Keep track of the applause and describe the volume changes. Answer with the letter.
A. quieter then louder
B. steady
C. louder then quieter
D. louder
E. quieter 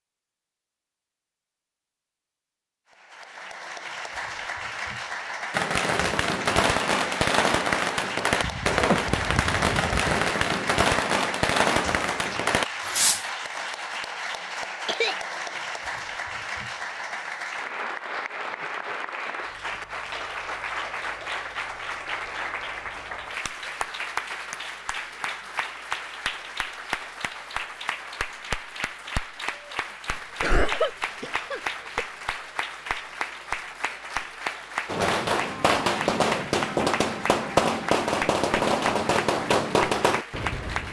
B.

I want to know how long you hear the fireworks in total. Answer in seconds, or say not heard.
14 s.